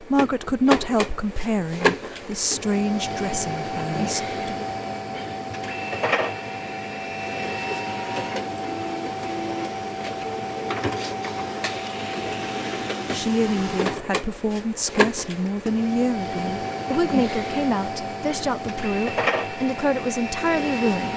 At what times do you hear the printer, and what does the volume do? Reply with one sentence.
The printer can be heard from 0.0 to 21.1 s, at a steady volume.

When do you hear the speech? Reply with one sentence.
The speech can be heard from 0.0 to 4.7 s and from 13.1 to 21.1 s.